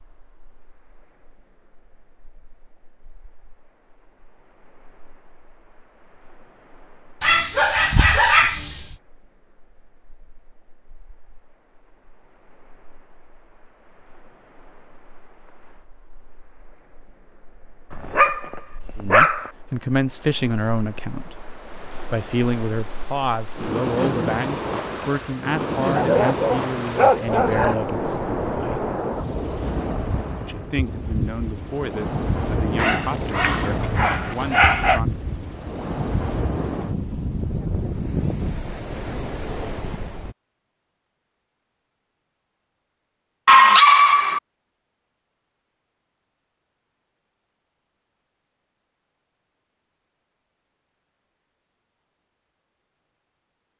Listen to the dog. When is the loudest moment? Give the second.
44 s.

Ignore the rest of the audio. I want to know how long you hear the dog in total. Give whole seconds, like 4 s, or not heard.
8 s.